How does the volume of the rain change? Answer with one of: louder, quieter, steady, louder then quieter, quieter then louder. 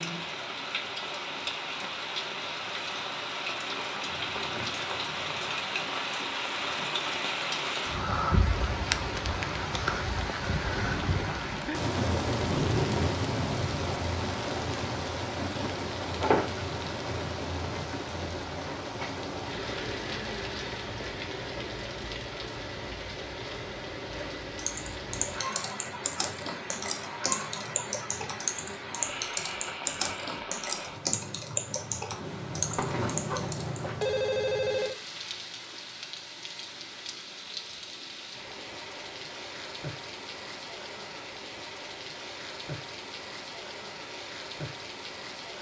quieter.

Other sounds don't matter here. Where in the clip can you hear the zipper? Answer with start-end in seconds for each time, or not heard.
not heard.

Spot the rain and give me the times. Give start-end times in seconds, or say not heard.
0.0-45.5.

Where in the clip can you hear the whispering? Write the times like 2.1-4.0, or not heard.
not heard.